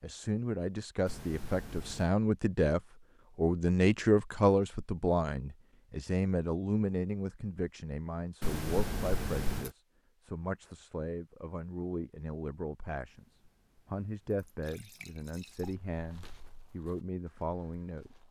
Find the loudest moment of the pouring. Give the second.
9 s.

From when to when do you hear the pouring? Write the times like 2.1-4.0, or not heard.
1.1-2.1, 8.4-9.7, 13.1-15.8.